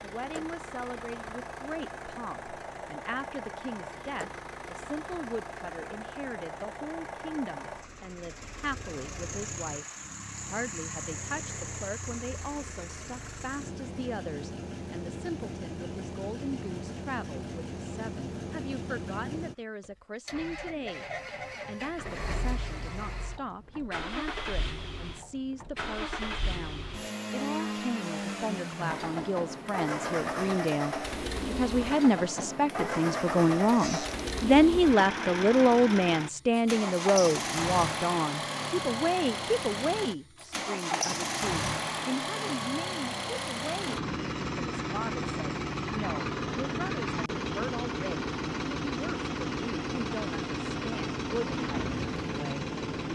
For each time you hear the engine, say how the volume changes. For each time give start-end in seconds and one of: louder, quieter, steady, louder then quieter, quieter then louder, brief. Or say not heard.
0.0-53.1 louder.